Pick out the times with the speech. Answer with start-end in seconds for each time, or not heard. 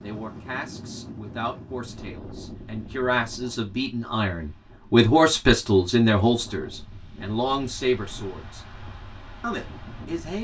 0.0-8.7, 9.4-10.3.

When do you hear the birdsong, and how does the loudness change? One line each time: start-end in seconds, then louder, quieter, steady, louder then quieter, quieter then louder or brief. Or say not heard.
not heard.